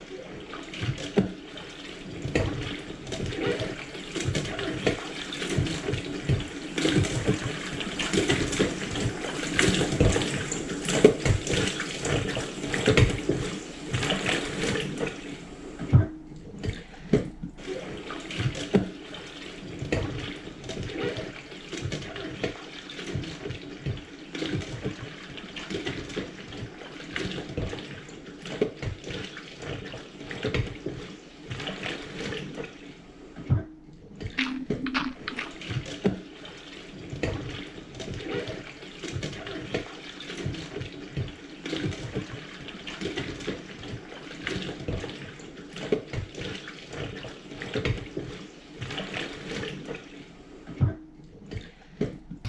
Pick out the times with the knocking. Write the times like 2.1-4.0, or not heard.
34.4-35.5.